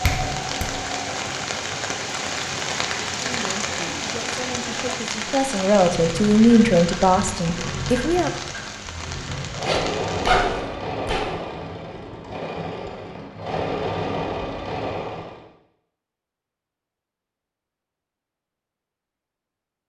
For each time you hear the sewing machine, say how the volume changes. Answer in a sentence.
The sewing machine can be heard from 0.0 to 15.4 s, getting louder.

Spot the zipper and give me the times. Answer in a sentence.
The zipper can be heard from 9.6 to 11.2 s.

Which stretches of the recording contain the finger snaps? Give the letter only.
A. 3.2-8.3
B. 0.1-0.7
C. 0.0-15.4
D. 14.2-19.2
B.